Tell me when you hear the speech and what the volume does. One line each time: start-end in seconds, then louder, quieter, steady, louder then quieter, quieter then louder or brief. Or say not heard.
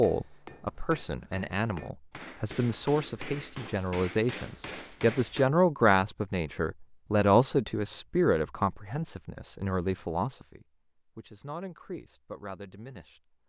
0.0-13.2 louder then quieter.